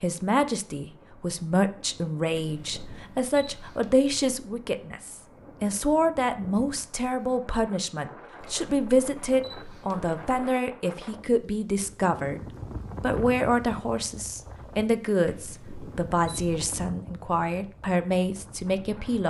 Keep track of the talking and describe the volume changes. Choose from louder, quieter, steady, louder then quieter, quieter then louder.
steady.